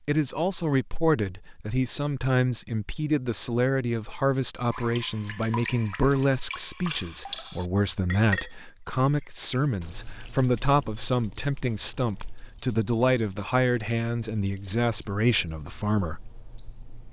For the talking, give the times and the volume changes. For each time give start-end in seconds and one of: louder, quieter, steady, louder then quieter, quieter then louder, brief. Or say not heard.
0.1-16.2 steady.